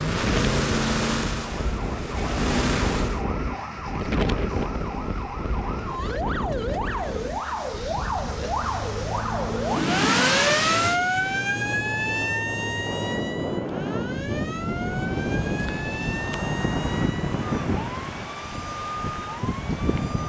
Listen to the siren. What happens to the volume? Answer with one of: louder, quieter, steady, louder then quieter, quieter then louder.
louder then quieter.